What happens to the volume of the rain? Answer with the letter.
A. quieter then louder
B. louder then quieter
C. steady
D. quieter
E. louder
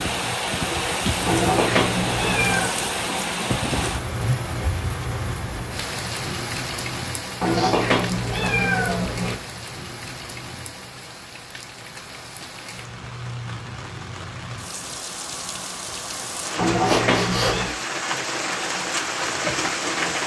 A.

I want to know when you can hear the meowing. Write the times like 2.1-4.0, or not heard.
1.2-2.7, 7.4-9.3, 16.6-17.7.